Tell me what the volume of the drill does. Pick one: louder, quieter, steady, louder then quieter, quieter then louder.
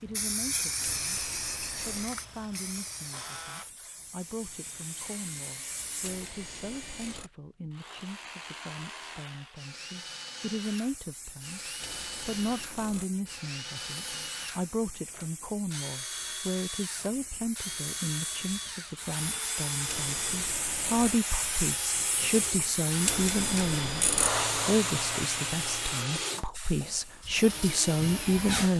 louder.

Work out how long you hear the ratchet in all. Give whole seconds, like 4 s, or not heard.
6 s.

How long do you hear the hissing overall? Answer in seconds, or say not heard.
24 s.